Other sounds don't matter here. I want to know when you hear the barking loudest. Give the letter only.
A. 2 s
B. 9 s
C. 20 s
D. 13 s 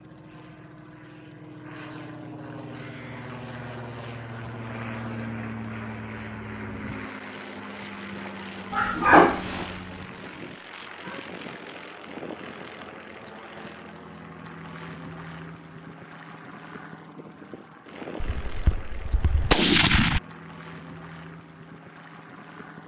B.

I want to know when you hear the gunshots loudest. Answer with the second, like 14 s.
20 s.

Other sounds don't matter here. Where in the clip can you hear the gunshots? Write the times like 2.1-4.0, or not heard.
18.2-20.2.